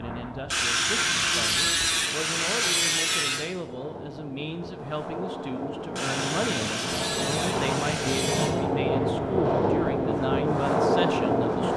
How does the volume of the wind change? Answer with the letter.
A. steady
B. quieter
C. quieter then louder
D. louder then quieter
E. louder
E.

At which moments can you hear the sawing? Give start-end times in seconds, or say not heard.
0.5-3.5, 6.0-8.6.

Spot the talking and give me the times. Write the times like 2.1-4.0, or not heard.
0.0-11.7.